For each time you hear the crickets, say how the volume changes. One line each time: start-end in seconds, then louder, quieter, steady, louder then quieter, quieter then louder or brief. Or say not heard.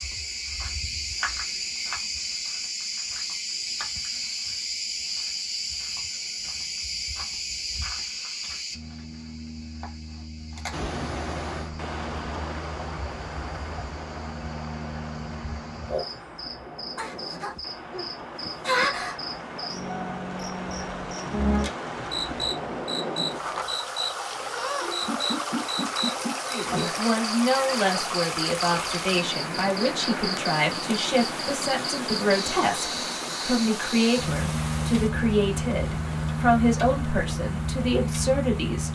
0.0-38.9 quieter then louder.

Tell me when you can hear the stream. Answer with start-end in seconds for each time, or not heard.
10.7-38.9.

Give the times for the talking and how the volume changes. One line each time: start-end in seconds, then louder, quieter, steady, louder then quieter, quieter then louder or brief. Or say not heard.
26.5-38.9 steady.